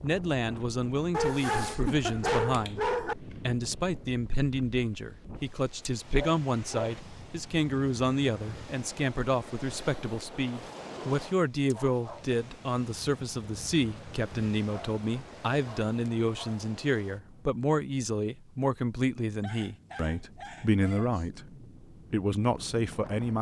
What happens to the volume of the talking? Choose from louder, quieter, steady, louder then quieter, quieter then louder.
steady.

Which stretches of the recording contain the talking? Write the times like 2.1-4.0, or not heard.
0.0-23.3.